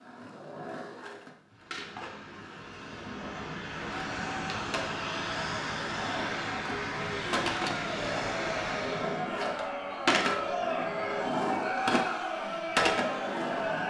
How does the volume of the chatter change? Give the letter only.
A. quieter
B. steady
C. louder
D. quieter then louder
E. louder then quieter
C.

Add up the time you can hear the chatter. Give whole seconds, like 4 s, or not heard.
10 s.